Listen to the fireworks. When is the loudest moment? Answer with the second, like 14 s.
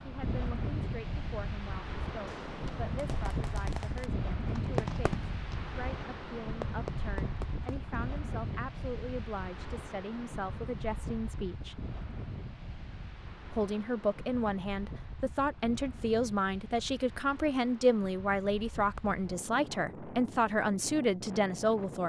5 s.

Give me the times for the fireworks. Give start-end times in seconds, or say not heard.
2.2-7.9.